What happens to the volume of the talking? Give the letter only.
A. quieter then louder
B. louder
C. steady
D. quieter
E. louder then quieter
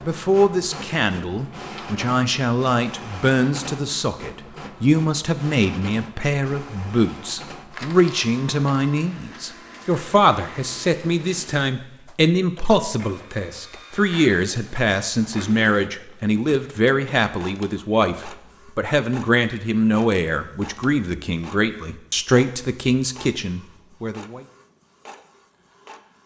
C.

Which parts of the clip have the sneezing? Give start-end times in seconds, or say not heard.
not heard.